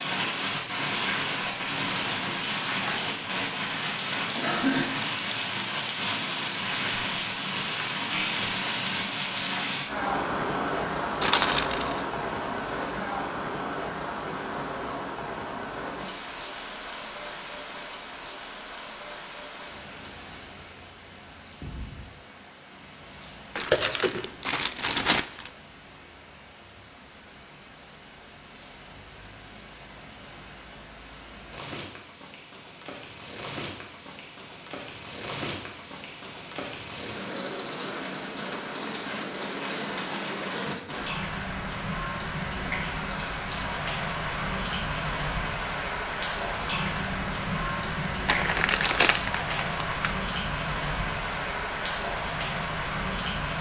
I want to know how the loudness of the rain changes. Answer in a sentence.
The volume of the rain goes down, then up.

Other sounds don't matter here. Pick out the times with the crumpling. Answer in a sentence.
You can hear the crumpling from 11.2 to 12.1 s, from 23.6 to 25.5 s and from 48.2 to 50.1 s.